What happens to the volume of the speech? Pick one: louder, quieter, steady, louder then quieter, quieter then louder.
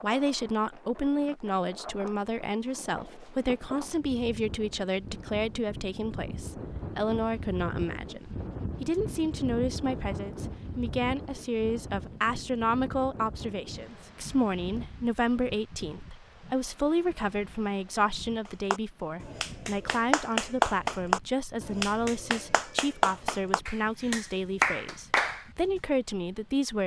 steady.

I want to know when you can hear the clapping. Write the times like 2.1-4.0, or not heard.
18.4-25.4.